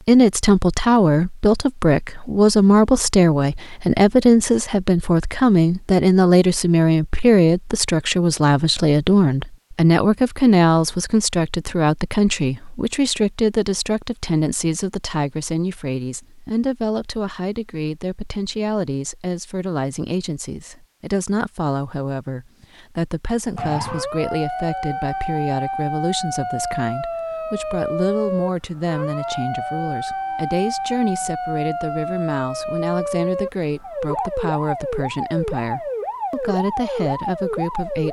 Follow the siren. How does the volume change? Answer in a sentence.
The loudness of the siren stays about the same.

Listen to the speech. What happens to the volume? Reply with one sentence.
The volume of the speech goes down.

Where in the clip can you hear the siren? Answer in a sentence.
You can hear the siren from 23.6 to 38.0 s.